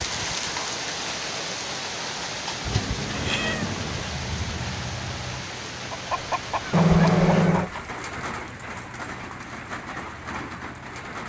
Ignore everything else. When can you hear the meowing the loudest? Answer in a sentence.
The loudest moment of the meowing is at 7 seconds.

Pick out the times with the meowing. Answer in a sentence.
The meowing can be heard from 2.6 to 4.1 s and from 6.7 to 7.7 s.